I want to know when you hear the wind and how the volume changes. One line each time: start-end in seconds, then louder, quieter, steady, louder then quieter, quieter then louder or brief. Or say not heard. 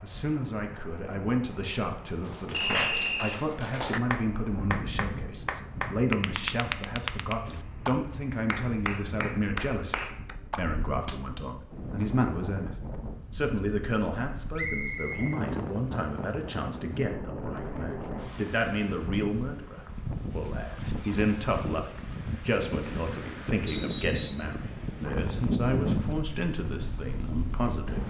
0.0-28.0 louder.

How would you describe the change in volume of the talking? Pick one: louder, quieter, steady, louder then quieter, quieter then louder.
steady.